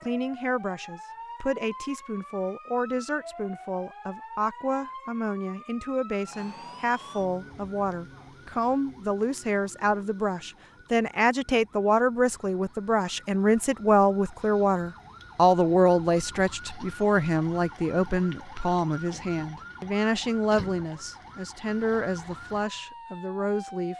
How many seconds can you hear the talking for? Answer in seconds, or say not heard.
24 s.